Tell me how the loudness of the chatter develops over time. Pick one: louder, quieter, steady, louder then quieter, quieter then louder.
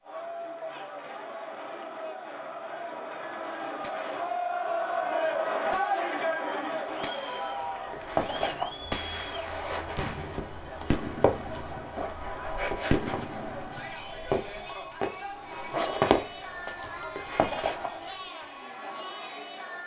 louder then quieter.